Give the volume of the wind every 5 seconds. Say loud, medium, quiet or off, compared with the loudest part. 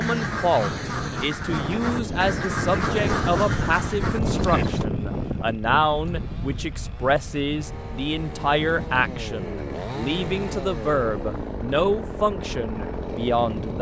loud, medium, medium.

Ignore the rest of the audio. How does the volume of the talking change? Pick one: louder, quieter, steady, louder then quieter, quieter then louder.
steady.